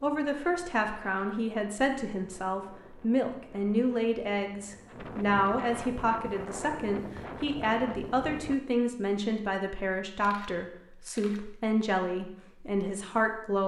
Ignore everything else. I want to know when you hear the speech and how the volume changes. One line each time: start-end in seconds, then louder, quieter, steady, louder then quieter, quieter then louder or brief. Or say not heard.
0.0-13.6 steady.